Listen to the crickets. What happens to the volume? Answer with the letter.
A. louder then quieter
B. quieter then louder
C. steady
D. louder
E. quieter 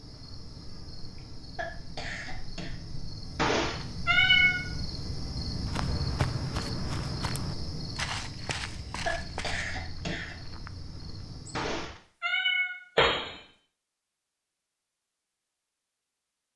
A.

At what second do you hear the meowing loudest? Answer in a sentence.
The loudest moment of the meowing is at 4 seconds.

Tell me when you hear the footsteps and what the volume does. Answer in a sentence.
You can hear the footsteps from 5.7 to 11.2 s, getting quieter.